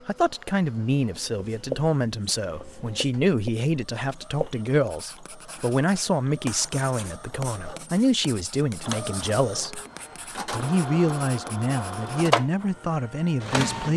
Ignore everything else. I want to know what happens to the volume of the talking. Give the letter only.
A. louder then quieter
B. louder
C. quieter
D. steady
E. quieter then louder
D.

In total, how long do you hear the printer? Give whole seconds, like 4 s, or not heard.
14 s.